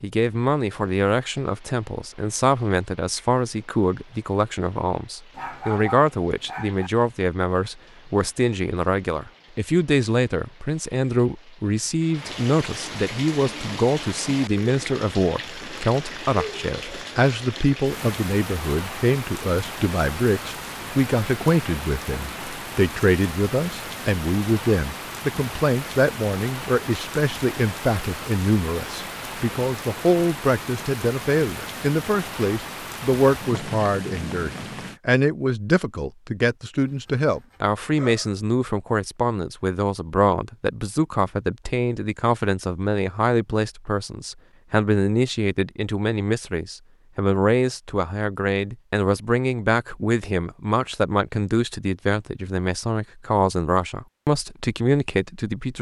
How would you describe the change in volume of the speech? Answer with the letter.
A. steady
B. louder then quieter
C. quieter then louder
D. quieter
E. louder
A.